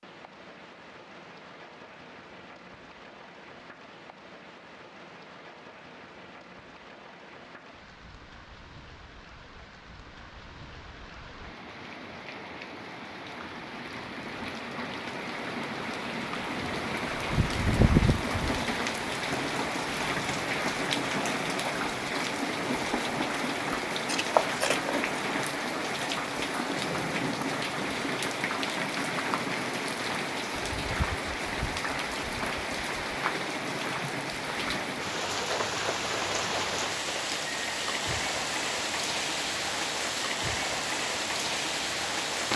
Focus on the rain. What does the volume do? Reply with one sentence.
The volume of the rain goes up.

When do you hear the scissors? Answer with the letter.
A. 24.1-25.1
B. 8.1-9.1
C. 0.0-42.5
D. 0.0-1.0
A.